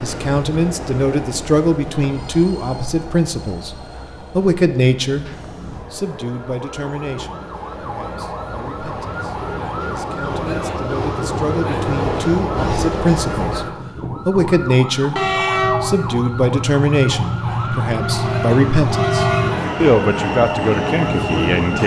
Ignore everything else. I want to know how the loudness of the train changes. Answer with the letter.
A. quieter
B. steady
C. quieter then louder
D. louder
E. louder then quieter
D.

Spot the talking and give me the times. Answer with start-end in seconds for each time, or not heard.
0.0-3.8, 4.3-13.7, 14.2-21.8.